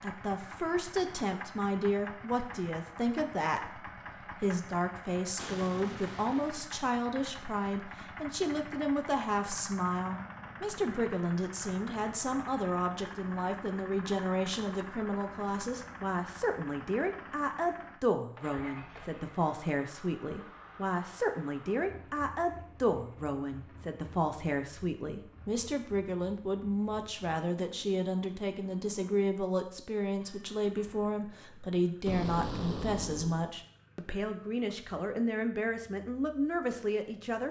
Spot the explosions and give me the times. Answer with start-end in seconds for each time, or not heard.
5.3-6.7, 18.8-19.2, 32.0-33.5.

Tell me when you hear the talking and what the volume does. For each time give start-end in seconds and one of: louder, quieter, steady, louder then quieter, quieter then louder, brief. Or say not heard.
0.0-37.4 steady.